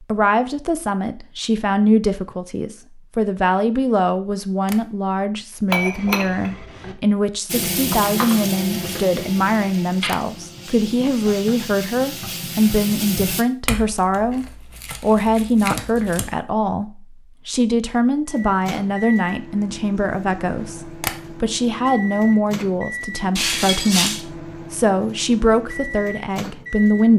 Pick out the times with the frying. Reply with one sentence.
You can hear the frying from 7.5 to 13.4 s.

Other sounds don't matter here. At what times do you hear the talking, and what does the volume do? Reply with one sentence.
You can hear the talking from 0.0 to 27.1 s, at a steady volume.